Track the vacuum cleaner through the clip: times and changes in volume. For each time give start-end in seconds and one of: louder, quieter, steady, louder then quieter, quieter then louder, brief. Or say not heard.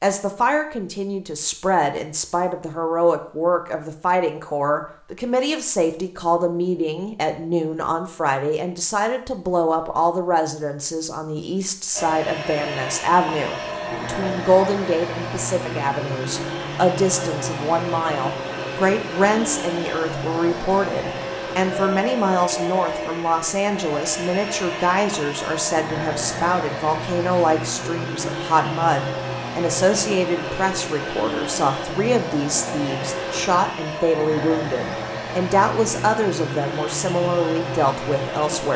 11.9-38.7 steady.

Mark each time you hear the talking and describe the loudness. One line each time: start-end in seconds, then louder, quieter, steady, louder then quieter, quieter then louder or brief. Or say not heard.
0.0-38.7 steady.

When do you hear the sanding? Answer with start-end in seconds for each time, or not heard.
not heard.